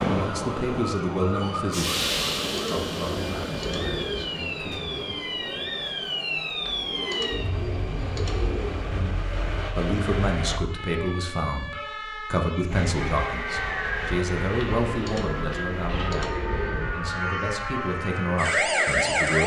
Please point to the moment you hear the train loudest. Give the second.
2 s.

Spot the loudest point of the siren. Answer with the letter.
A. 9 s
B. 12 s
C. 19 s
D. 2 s
C.